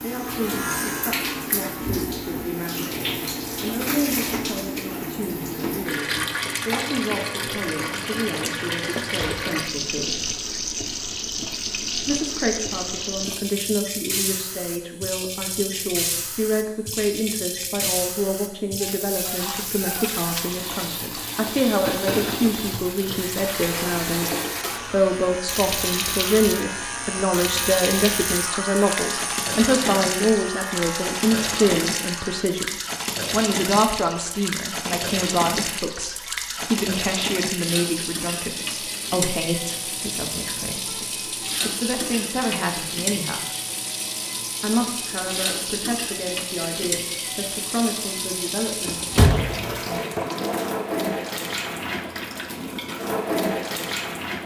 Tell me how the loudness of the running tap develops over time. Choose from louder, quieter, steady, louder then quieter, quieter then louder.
steady.